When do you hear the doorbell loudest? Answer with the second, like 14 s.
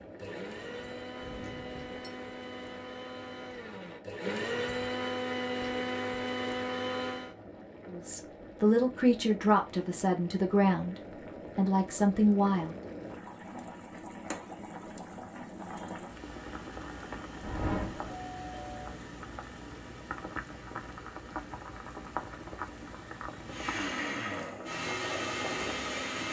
18 s.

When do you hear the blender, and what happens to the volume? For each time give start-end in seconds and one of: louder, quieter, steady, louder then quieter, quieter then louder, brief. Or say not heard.
0.0-7.3 louder
23.4-26.2 brief.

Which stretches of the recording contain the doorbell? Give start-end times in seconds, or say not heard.
1.2-2.1, 17.4-18.9.